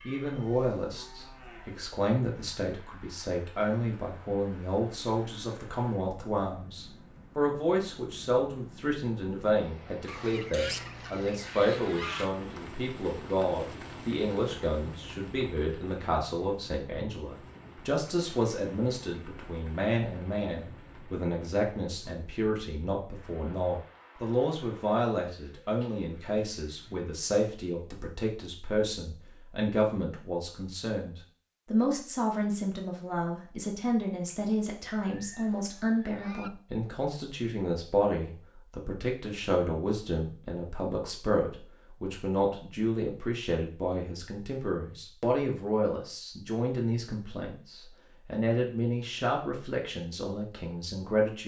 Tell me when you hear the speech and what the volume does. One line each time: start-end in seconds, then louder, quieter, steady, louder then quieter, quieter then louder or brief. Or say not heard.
0.1-51.4 steady.